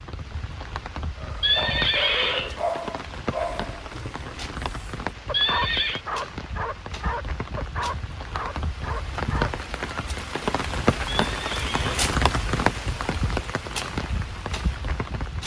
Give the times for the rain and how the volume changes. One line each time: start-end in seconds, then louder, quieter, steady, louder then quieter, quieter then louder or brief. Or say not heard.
0.0-15.4 louder.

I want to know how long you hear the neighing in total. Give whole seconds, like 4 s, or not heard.
3 s.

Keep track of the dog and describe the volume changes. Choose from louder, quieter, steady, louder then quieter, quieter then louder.
steady.